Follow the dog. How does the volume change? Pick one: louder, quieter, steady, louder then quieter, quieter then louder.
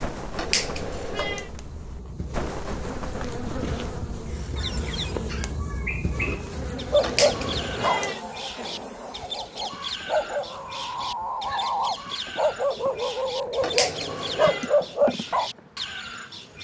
louder.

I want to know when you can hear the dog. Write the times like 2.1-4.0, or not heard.
6.9-15.5.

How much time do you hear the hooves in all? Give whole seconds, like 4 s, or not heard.
not heard.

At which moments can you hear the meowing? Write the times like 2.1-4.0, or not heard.
0.3-1.5, 7.0-8.2, 13.6-14.7.